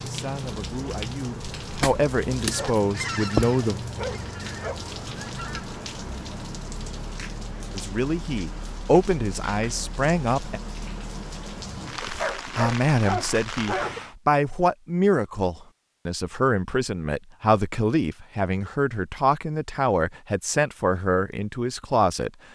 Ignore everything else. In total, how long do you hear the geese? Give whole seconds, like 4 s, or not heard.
4 s.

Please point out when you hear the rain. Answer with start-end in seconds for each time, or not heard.
0.0-14.2.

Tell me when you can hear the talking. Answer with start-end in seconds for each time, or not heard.
0.0-3.8, 7.7-10.6, 12.1-22.3.